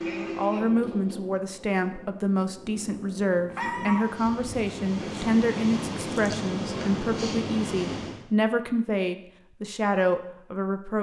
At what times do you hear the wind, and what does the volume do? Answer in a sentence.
The wind can be heard from 0.0 to 8.2 s, getting quieter then louder.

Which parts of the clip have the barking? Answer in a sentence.
You can hear the barking from 2.6 to 4.0 s.